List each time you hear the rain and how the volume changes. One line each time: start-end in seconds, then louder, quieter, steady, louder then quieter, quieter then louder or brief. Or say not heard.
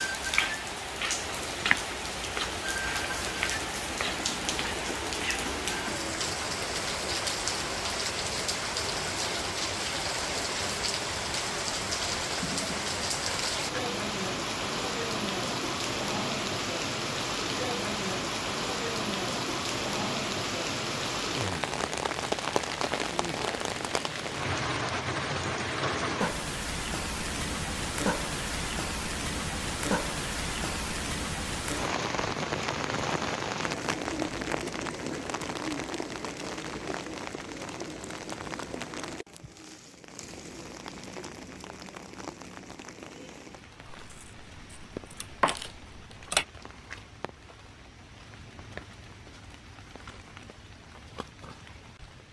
0.0-52.2 quieter.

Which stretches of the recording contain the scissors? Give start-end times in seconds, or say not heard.
43.9-46.5.